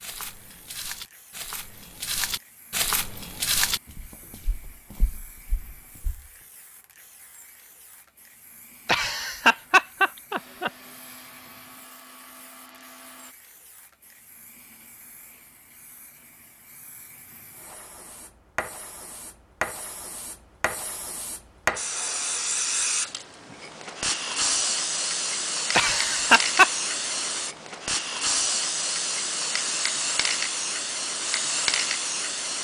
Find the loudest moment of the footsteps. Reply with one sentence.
The volume of the footsteps peaks at 4 seconds.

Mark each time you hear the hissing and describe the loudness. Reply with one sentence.
The hissing can be heard from 0.2 to 32.6 s, getting louder.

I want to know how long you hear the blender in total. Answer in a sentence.
You can hear the blender for 3 seconds altogether.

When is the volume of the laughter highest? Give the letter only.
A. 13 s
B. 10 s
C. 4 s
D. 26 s
D.